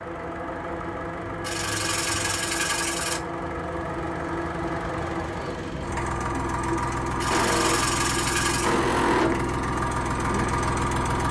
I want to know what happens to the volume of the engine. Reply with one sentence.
The volume of the engine goes up.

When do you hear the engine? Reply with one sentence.
The engine can be heard from 0.0 to 11.2 s.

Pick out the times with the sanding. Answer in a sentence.
You can hear the sanding from 1.4 to 3.2 s and from 7.2 to 8.8 s.